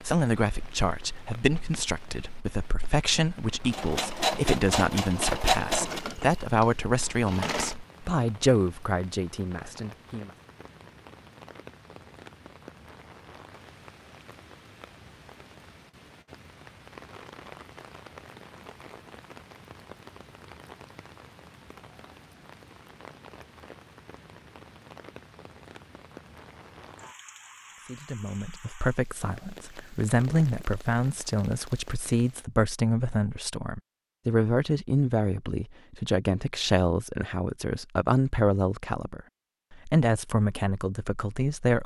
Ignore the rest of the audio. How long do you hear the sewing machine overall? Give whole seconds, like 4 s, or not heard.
4 s.